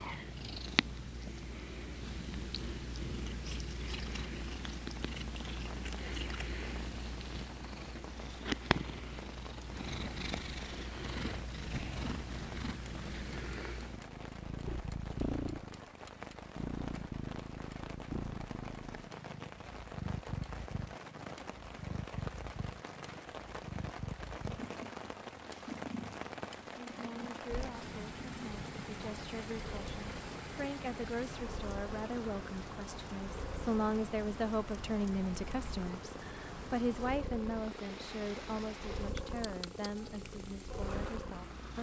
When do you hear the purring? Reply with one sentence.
You can hear the purring from 0.0 to 41.7 s.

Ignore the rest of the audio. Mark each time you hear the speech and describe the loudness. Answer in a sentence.
You can hear the speech from 26.9 to 41.7 s, getting louder then quieter.